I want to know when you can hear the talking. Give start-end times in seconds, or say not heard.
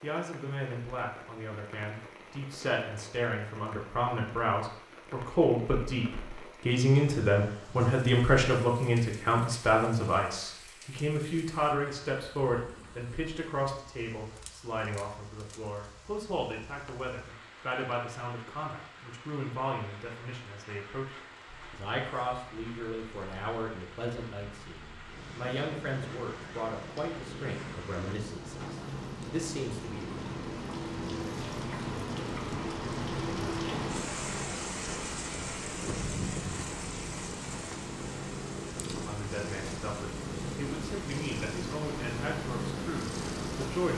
0.0-30.2, 38.9-43.9.